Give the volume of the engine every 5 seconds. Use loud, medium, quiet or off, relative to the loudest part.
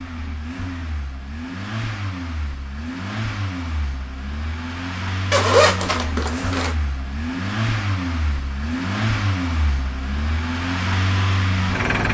medium, loud, loud.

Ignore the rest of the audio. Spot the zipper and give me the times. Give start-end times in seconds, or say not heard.
5.3-6.8.